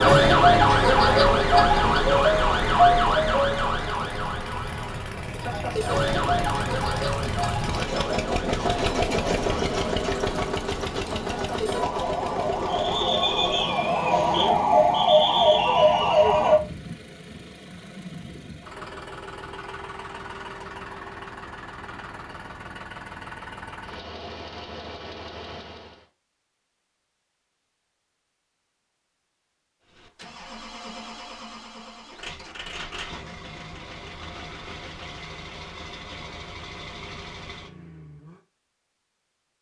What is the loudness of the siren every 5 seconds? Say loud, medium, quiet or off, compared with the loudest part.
loud, medium, medium, loud, off, off, off, off.